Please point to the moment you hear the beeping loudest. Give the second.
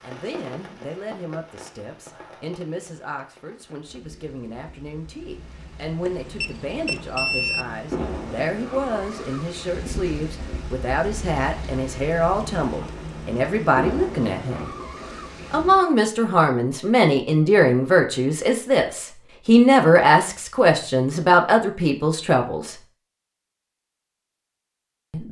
7 s.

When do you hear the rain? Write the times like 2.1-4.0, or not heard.
0.0-15.8.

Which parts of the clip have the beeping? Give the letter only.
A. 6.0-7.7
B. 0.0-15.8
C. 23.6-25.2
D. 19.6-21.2
A.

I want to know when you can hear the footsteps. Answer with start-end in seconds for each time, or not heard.
not heard.